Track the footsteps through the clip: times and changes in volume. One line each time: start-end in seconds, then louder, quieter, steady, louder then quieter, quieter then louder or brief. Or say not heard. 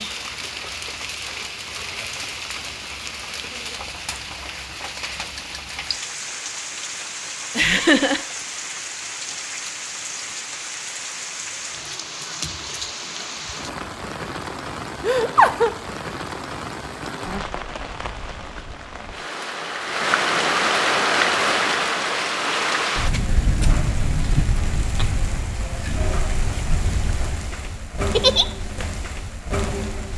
not heard.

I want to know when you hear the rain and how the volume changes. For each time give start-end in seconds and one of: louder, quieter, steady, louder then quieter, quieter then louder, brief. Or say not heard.
0.0-30.1 louder then quieter.